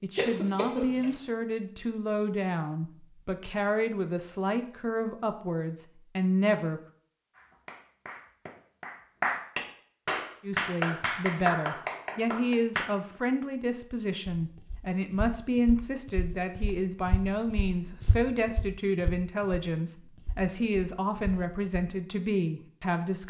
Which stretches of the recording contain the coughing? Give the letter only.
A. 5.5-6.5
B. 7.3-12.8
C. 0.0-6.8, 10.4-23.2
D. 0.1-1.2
D.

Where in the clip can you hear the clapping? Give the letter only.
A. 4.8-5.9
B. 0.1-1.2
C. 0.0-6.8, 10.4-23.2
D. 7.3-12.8
D.